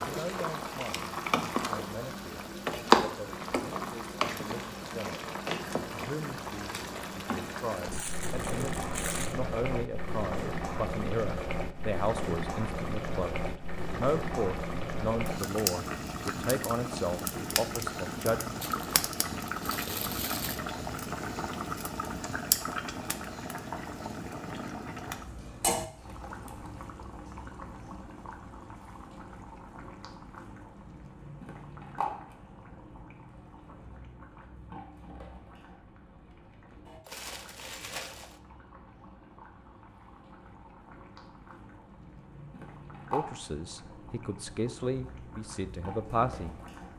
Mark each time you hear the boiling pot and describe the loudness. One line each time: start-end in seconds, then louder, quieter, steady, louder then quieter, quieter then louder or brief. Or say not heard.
0.0-46.9 quieter.